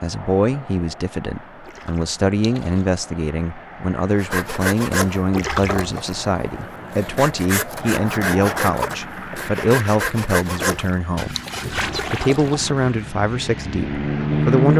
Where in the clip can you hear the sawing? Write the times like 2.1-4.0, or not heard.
4.2-13.1.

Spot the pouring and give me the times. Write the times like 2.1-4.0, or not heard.
1.6-2.9, 5.3-6.0, 10.7-12.8.